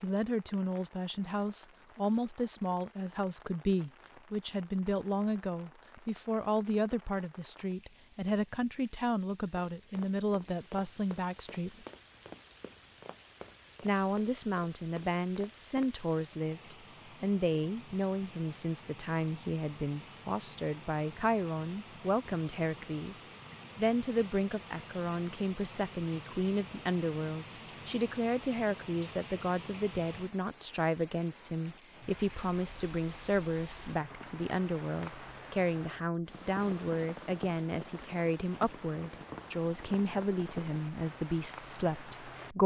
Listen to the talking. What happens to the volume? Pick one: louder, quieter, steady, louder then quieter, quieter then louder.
steady.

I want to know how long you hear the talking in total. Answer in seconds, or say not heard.
41 s.